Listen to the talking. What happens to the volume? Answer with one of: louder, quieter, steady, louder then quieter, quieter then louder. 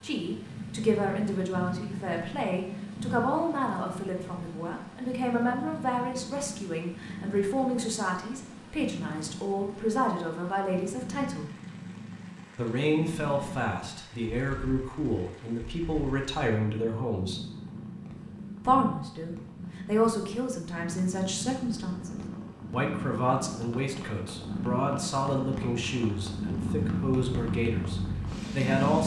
steady.